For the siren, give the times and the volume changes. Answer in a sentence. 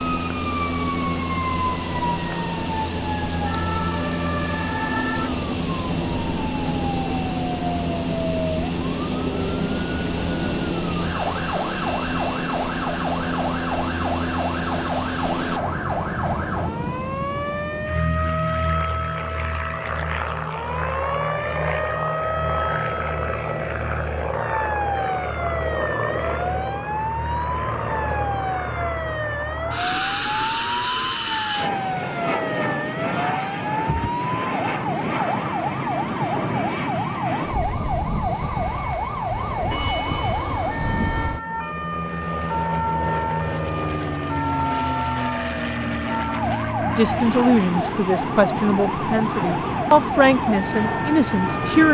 You can hear the siren from 0.0 to 51.8 s, at a steady volume.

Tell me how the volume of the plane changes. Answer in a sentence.
The loudness of the plane stays about the same.